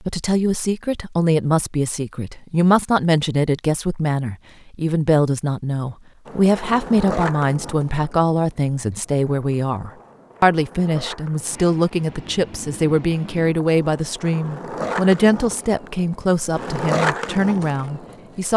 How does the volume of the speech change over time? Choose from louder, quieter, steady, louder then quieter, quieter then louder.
steady.